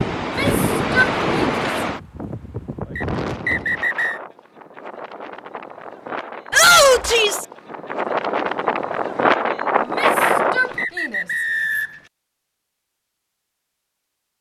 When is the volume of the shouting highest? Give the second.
7 s.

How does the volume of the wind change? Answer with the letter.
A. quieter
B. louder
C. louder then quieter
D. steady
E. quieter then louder
E.